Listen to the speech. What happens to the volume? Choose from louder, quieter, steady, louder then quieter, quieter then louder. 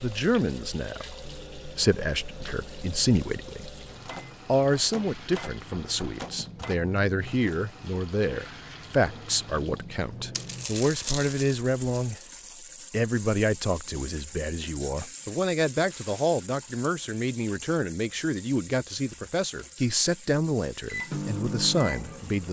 steady.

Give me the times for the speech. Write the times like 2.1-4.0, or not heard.
0.0-3.7, 4.5-12.2, 12.9-22.4.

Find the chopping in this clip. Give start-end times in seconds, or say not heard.
not heard.